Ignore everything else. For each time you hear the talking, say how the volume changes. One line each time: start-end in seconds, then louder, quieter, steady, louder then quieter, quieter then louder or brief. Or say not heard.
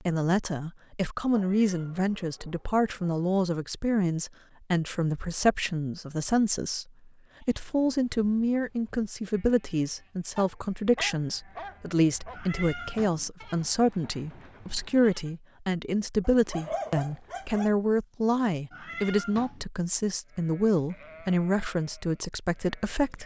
0.1-23.2 steady.